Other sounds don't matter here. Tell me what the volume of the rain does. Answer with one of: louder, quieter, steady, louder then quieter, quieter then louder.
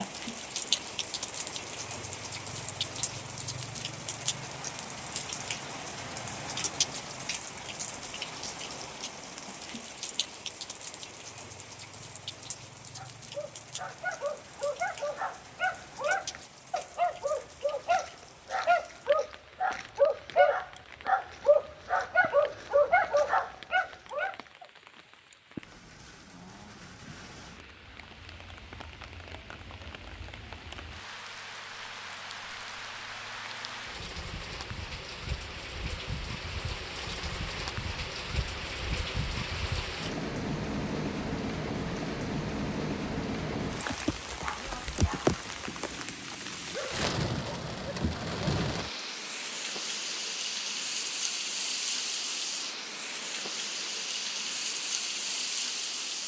quieter then louder.